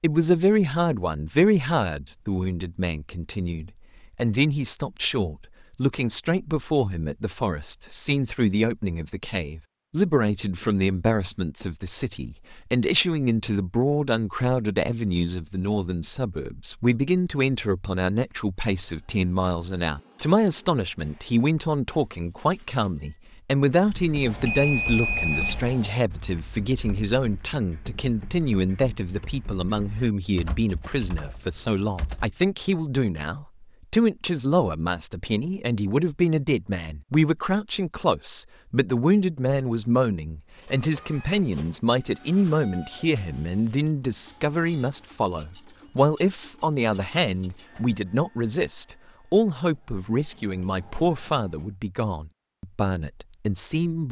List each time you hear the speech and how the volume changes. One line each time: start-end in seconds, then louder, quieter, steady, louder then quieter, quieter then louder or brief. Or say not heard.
0.0-54.0 steady.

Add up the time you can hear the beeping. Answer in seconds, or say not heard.
2 s.